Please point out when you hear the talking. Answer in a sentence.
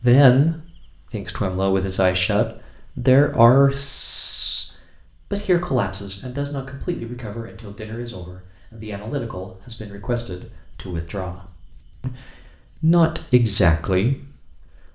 The talking can be heard from 0.0 to 11.4 s and from 12.0 to 14.4 s.